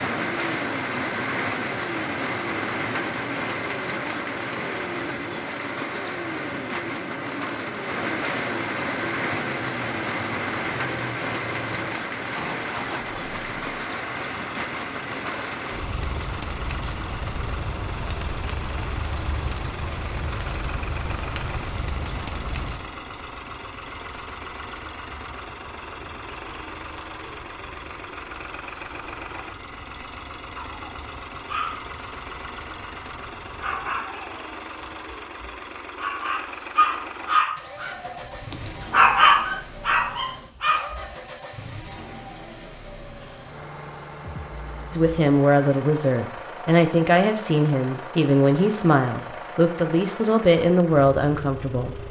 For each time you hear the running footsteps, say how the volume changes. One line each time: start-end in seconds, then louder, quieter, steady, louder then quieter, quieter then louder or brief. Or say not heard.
not heard.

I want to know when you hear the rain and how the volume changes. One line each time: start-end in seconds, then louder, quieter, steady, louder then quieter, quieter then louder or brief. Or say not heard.
0.0-34.0 quieter.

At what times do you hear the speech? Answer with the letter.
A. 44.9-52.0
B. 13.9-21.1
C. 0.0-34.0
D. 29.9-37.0
A.